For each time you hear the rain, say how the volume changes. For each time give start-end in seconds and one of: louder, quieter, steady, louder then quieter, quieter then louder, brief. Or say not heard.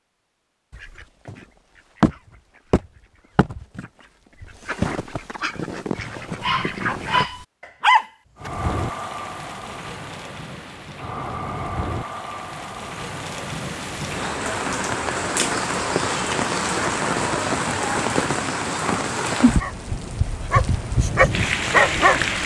8.3-22.4 louder.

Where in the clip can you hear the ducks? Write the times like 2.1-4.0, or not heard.
0.7-7.2.